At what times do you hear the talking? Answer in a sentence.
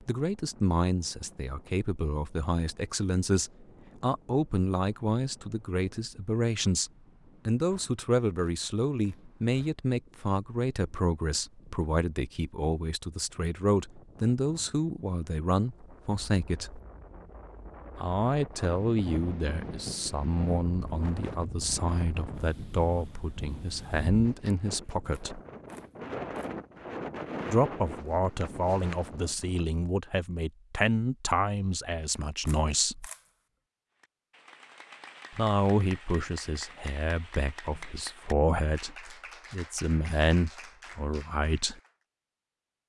The talking can be heard from 0.1 to 16.8 s, from 17.9 to 25.4 s, from 27.4 to 33.1 s and from 35.4 to 41.8 s.